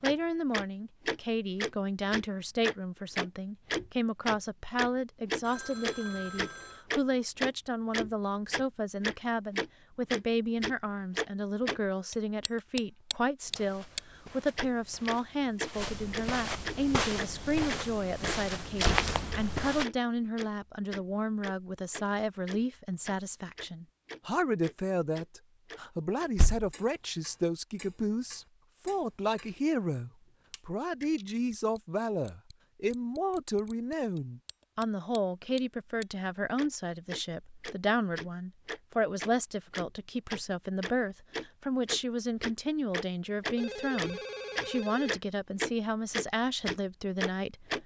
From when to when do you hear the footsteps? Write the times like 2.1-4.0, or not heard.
13.4-19.9.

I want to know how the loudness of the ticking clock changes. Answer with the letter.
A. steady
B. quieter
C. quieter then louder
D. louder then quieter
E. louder
C.